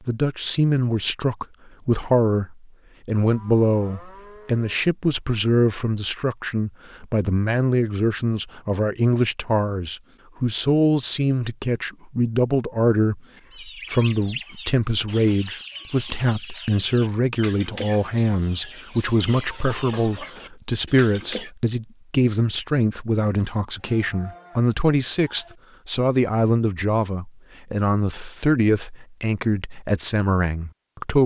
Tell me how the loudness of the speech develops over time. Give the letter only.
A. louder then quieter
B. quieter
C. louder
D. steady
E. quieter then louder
D.